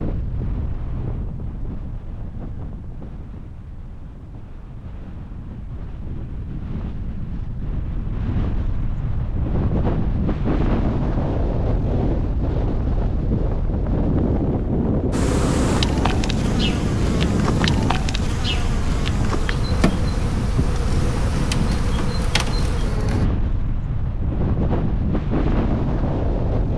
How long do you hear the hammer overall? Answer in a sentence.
You can't hear the hammer here.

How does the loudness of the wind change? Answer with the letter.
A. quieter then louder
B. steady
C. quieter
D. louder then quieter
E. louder
E.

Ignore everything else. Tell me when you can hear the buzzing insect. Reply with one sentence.
The buzzing insect can be heard from 15.1 to 23.3 s.